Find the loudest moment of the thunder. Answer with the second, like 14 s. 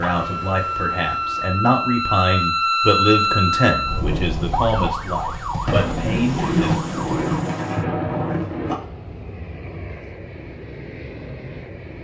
7 s.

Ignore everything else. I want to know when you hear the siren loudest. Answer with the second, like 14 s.
3 s.